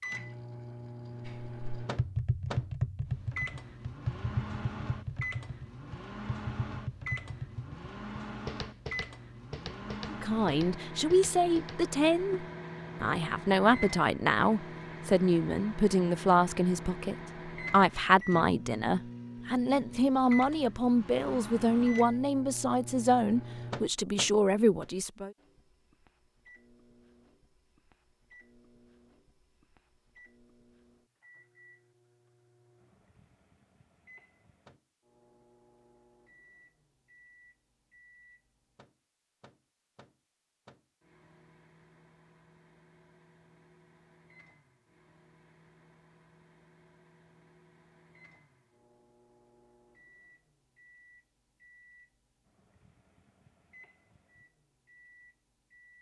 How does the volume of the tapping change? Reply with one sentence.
The loudness of the tapping goes down.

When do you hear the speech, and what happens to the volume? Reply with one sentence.
The speech can be heard from 10.1 to 25.3 s, at a steady volume.